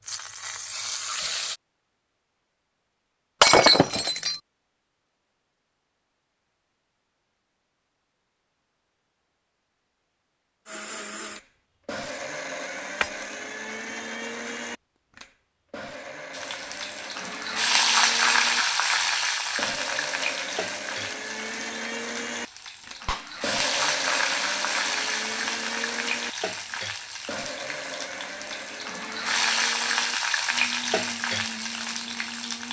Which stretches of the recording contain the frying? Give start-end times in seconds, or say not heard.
0.0-1.6, 16.4-32.6.